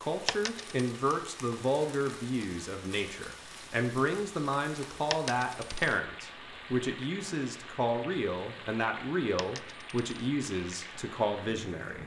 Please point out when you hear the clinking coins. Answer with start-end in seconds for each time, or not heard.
0.2-0.7, 5.1-6.0, 9.3-10.2.